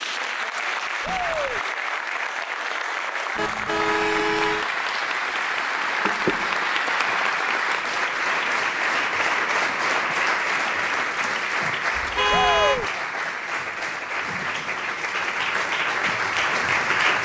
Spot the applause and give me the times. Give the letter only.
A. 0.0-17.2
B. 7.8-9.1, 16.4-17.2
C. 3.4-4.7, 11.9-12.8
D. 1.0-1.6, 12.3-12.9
A.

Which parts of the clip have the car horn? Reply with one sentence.
The car horn can be heard from 3.4 to 4.7 s and from 11.9 to 12.8 s.